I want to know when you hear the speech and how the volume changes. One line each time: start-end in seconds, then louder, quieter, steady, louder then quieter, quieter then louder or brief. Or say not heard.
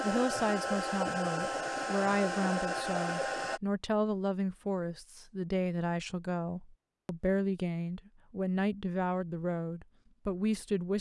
0.0-10.9 steady.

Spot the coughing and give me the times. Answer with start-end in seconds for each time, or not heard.
not heard.